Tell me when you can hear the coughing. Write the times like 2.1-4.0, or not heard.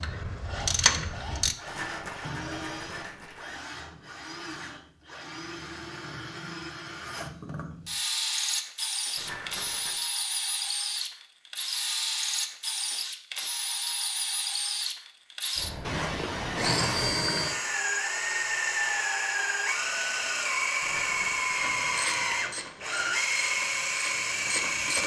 15.8-17.1.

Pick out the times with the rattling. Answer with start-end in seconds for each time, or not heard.
1.6-3.6, 9.2-10.1, 20.8-21.7.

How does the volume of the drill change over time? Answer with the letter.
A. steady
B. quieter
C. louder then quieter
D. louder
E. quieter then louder
D.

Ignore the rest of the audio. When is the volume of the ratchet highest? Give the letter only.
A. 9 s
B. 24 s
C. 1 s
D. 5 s
C.